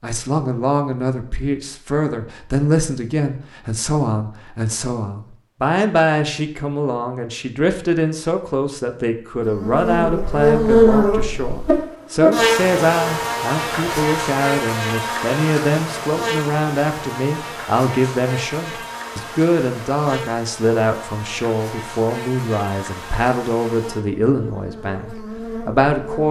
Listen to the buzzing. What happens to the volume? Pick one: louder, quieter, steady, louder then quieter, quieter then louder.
quieter.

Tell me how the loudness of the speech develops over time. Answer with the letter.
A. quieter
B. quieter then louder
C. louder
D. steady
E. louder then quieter
D.